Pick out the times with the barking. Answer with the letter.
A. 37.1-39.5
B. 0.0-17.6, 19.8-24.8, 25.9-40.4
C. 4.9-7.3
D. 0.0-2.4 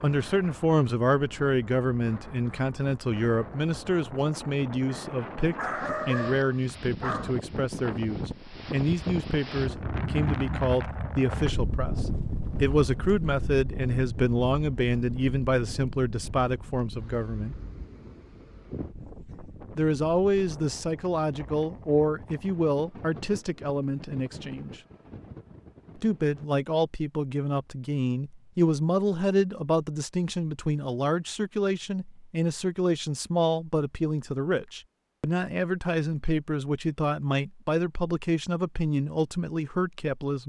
C.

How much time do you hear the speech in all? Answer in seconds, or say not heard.
37 s.